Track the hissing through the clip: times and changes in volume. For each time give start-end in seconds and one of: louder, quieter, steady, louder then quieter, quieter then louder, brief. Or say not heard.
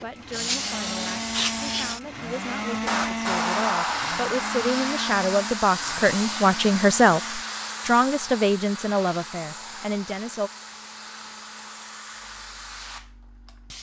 0.0-13.7 quieter.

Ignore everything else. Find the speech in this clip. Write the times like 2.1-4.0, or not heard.
0.0-10.5.